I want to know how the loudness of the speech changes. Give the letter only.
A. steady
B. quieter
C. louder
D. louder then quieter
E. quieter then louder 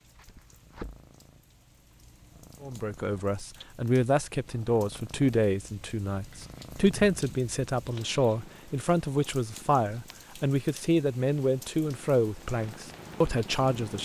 A.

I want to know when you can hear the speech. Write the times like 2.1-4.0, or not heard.
2.6-14.0.